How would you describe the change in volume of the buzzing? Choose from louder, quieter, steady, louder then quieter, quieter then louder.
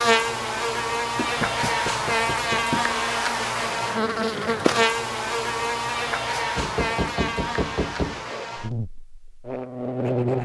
quieter.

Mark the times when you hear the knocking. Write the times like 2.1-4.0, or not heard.
1.1-2.9, 6.5-8.4.